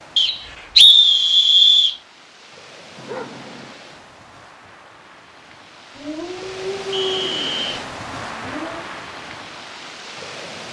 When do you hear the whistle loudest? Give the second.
1 s.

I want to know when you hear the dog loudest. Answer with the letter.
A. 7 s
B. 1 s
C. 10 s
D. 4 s
A.